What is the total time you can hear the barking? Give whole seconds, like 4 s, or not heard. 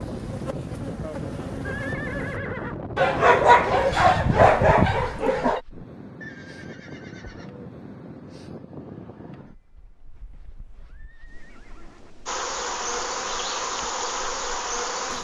3 s.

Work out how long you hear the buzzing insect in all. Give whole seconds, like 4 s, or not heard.
5 s.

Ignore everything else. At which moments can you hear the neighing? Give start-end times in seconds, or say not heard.
1.6-2.8, 6.2-7.7, 10.1-12.1.